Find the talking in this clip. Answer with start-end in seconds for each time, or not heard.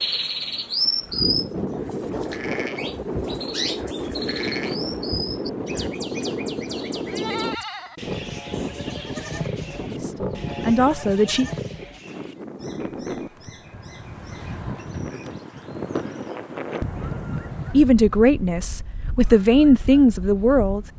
9.8-11.4, 17.7-20.8.